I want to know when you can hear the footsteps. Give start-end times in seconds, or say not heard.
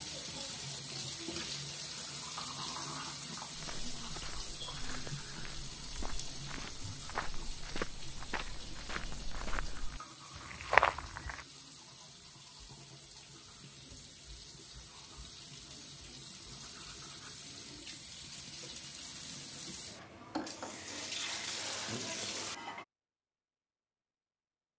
3.5-11.4.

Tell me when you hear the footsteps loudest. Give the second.
11 s.